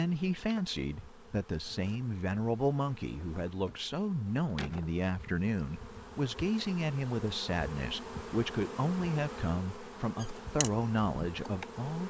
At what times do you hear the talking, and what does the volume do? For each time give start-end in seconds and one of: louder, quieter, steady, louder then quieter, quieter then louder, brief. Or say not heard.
0.0-12.0 steady.